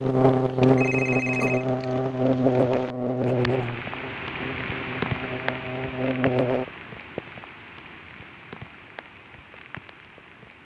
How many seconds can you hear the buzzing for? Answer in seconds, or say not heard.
7 s.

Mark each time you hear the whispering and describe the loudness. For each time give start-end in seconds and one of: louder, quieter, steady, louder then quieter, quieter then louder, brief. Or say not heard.
not heard.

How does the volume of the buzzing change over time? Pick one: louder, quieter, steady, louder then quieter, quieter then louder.
quieter then louder.